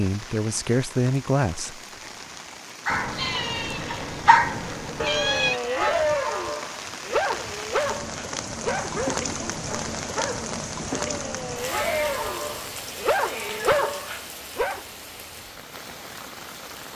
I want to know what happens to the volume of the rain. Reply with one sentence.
The volume of the rain goes up, then down.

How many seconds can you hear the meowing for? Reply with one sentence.
You can hear the meowing for 5 seconds altogether.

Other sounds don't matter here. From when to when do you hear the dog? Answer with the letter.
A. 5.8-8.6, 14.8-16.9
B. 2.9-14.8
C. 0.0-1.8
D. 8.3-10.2
B.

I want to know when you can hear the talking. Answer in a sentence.
You can hear the talking from 0.0 to 1.8 s.